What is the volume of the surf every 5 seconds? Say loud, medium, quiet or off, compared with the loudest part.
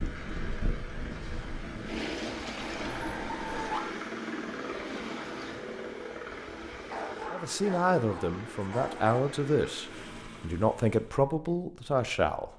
loud, medium, off.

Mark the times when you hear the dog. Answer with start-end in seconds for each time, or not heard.
2.5-4.0, 6.9-9.3.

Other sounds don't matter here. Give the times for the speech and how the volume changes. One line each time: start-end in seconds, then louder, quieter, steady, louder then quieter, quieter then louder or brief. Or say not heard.
7.3-12.5 steady.